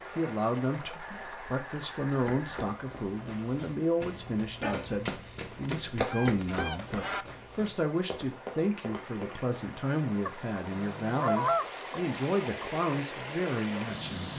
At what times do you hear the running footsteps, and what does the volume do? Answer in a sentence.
You can hear the running footsteps from 2.0 to 9.3 s, getting louder then quieter.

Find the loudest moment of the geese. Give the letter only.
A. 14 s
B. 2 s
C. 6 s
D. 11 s
D.